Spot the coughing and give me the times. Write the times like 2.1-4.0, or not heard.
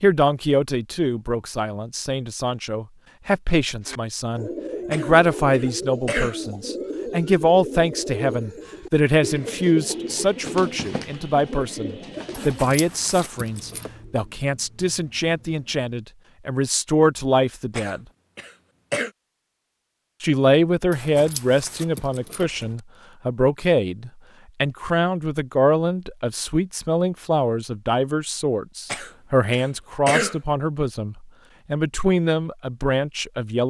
4.9-6.3, 17.8-19.1, 28.9-30.4.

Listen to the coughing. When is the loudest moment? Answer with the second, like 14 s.
30 s.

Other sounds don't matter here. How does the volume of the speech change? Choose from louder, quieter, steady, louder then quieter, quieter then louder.
steady.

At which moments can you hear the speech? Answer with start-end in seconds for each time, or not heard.
0.0-18.1, 20.2-33.6.